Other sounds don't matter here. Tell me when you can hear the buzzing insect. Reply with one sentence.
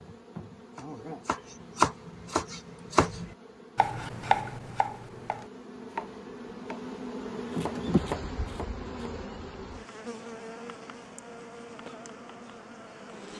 You can hear the buzzing insect from 0.0 to 13.3 s.